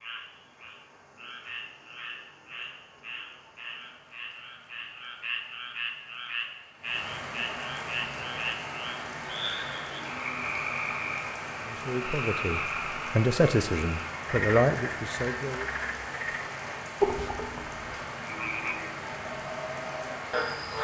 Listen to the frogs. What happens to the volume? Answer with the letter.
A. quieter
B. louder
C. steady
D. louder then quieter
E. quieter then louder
B.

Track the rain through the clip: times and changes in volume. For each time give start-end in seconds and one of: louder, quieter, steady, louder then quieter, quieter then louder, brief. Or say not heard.
0.0-20.7 louder.